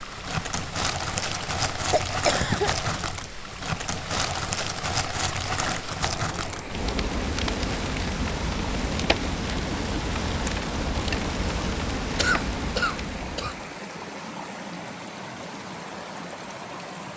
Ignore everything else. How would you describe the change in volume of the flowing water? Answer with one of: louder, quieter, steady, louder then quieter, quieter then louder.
steady.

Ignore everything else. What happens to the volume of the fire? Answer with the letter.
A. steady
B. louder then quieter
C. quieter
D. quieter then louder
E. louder
A.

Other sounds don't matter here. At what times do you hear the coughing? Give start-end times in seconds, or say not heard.
1.9-2.8, 12.2-13.6.